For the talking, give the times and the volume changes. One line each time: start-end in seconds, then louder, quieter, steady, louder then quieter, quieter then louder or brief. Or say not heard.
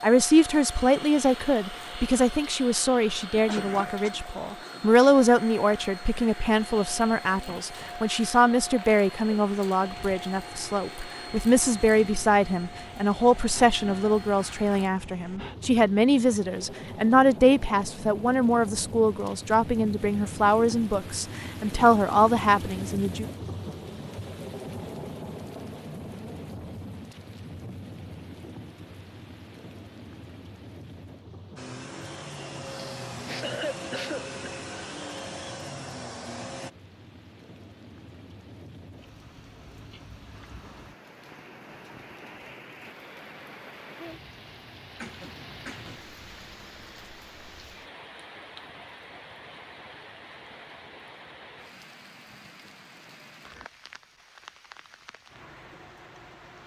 0.0-23.2 steady.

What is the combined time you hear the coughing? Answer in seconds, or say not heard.
4 s.